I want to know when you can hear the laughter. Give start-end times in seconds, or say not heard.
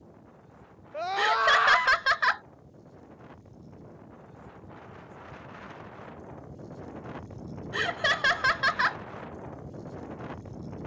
1.1-2.4, 7.7-8.9.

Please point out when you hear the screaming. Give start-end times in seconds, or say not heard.
0.9-1.9.